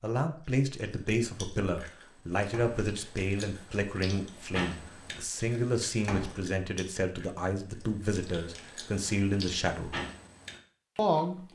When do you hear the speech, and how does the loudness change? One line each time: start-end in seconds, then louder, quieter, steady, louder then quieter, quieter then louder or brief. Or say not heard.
0.0-10.0 steady
10.9-11.5 brief.